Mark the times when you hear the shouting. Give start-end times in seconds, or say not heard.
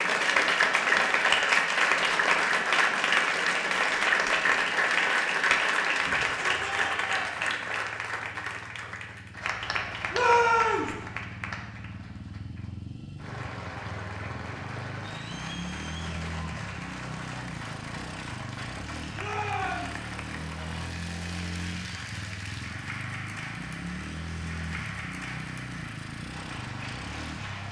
6.0-7.3, 10.1-10.9, 19.1-20.0.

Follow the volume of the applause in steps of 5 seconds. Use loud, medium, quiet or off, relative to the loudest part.
loud, medium, quiet, quiet, quiet, quiet.